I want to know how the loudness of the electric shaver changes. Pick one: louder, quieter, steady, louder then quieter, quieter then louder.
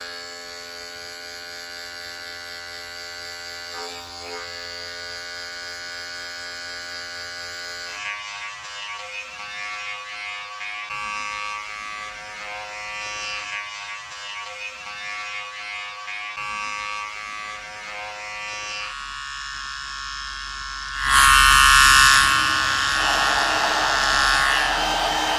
louder.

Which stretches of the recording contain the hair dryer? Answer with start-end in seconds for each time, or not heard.
22.1-25.3.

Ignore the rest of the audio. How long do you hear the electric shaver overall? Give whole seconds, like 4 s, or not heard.
25 s.